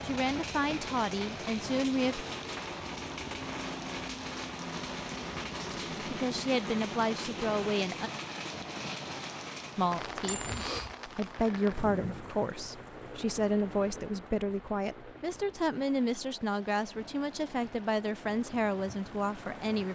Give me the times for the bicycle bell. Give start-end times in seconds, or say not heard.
10.2-10.9.